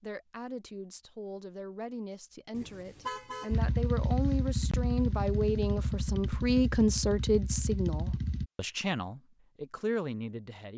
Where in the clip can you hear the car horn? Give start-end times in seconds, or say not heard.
2.5-3.5.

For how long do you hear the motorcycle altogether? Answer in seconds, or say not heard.
5 s.